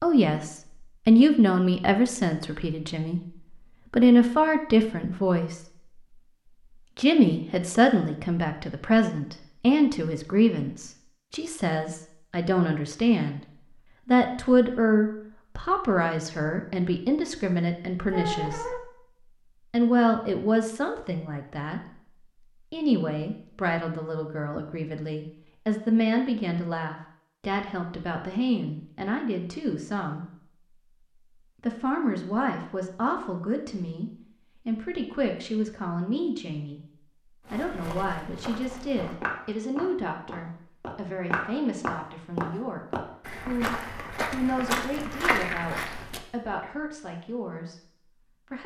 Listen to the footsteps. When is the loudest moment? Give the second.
45 s.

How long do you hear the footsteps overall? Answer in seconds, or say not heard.
9 s.